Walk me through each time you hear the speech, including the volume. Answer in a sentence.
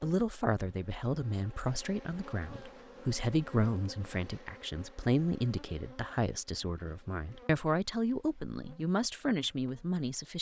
The speech can be heard from 0.0 to 10.3 s, at a steady volume.